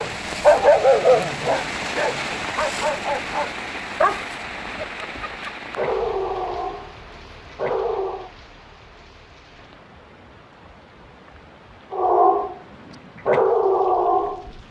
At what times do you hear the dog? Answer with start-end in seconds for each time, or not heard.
0.0-8.3, 11.9-12.6, 13.2-14.4.